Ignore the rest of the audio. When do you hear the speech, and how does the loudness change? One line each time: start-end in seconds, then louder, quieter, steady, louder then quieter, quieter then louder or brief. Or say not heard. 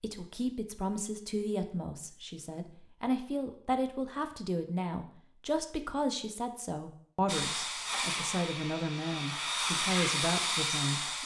0.0-11.2 steady.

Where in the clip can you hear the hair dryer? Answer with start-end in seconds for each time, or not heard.
7.2-11.2.